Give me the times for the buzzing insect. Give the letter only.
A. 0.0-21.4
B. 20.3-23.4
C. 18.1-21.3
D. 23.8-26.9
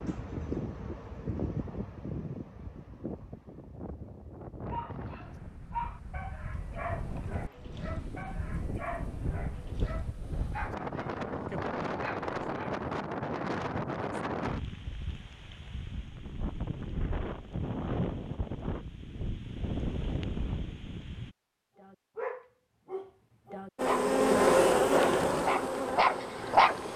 D.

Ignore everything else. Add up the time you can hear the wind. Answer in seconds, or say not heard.
21 s.